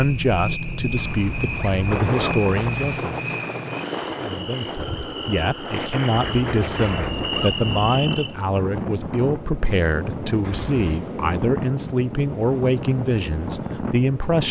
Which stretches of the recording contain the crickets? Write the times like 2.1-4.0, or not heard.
0.0-8.3.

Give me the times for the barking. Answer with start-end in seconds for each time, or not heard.
not heard.